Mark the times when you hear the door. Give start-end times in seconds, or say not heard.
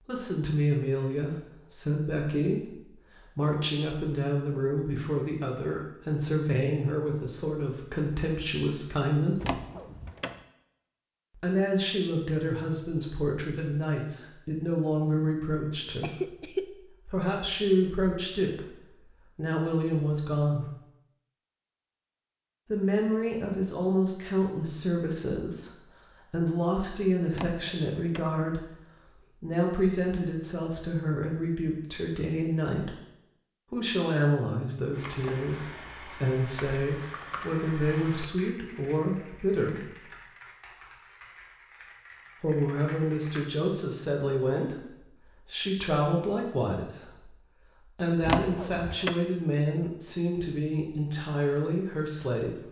9.4-10.4, 27.3-28.3, 48.2-49.1.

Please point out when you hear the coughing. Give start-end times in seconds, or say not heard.
16.0-16.6.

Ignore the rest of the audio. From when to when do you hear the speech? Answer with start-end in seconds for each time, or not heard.
0.1-9.7, 11.3-20.7, 22.6-28.7, 29.3-33.0, 33.7-39.9, 42.4-52.6.